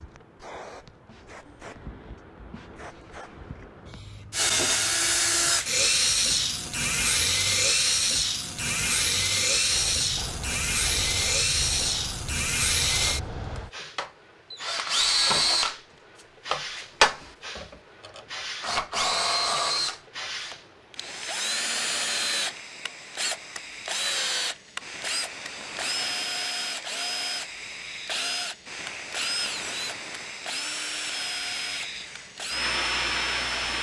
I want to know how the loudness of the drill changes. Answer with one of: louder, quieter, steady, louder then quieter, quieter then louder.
quieter.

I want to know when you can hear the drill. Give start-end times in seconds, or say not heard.
4.3-33.7.